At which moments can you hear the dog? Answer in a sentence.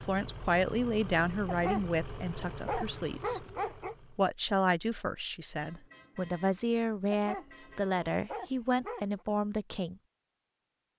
The dog can be heard from 1.4 to 4.0 s and from 7.1 to 9.2 s.